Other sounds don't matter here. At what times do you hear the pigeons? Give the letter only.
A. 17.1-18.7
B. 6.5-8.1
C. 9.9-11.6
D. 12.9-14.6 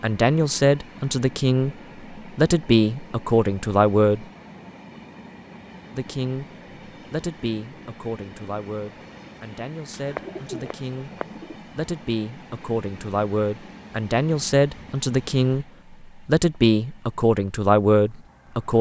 C.